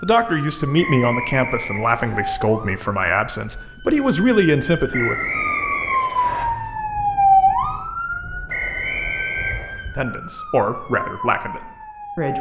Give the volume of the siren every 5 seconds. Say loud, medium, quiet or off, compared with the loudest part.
medium, loud, medium.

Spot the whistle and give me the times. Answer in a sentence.
You can hear the whistle from 0.8 to 2.0 s, from 4.9 to 6.5 s and from 8.4 to 9.8 s.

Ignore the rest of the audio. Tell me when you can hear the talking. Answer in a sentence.
The talking can be heard from 0.0 to 5.2 s and from 9.9 to 12.3 s.